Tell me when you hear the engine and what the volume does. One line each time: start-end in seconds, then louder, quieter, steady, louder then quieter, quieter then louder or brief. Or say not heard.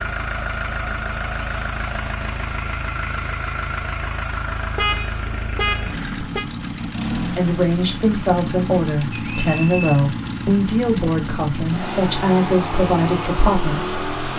0.0-14.3 steady.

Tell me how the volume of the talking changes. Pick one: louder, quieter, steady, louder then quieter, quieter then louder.
steady.